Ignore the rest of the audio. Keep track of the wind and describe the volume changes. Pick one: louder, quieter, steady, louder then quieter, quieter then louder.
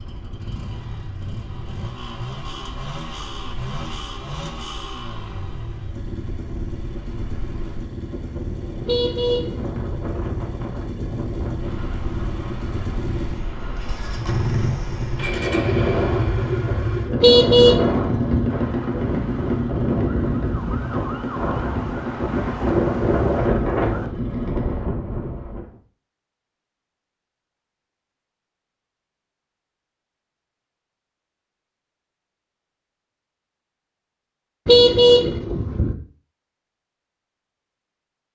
louder.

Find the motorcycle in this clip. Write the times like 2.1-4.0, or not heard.
0.0-24.9.